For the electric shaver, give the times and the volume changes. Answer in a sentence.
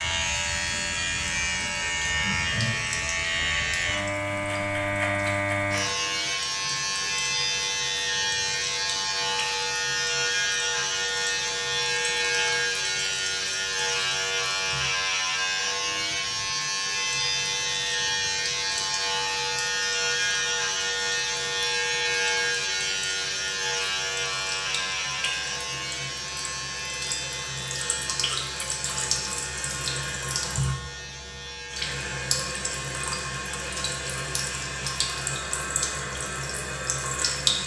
The electric shaver can be heard from 0.0 to 37.5 s, getting quieter.